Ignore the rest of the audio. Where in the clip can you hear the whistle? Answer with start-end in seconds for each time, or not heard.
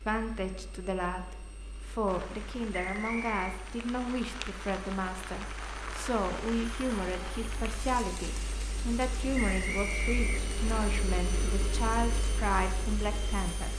2.8-3.6, 9.3-10.8.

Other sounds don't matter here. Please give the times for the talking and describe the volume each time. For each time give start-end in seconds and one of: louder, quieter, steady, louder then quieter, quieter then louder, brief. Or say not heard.
0.1-13.7 steady.